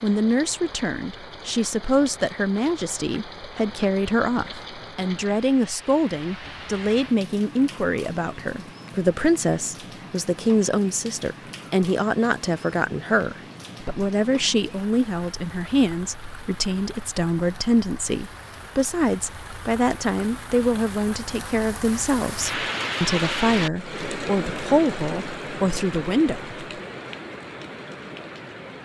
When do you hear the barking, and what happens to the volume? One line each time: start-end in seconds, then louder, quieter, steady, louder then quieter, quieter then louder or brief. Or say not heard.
not heard.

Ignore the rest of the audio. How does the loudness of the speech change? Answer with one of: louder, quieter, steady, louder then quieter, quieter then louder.
steady.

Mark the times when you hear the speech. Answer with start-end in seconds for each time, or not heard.
0.0-26.6.